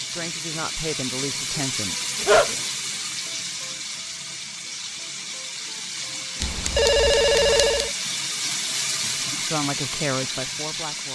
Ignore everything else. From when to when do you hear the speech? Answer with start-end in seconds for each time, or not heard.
0.0-1.9, 9.0-11.0.